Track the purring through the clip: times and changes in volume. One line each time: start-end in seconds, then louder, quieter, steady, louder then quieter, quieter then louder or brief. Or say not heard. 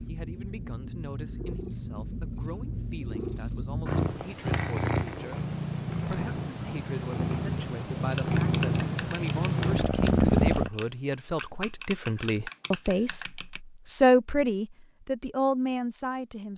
0.0-10.7 louder.